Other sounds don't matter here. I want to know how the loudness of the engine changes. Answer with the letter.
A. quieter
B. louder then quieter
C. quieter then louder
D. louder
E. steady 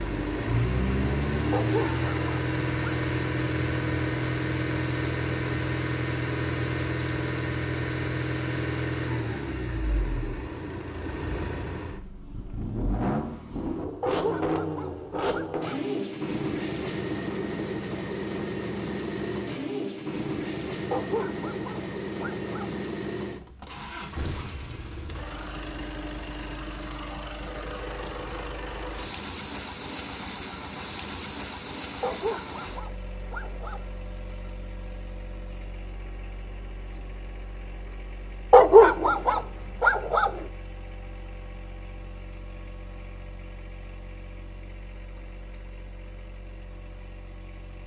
A.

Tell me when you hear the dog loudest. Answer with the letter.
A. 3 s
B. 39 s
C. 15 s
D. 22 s
B.